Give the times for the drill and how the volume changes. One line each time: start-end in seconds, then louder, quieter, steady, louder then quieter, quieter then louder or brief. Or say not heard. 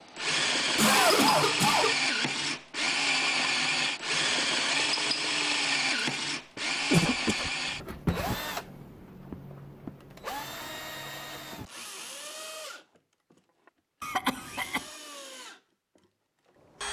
0.0-16.8 quieter.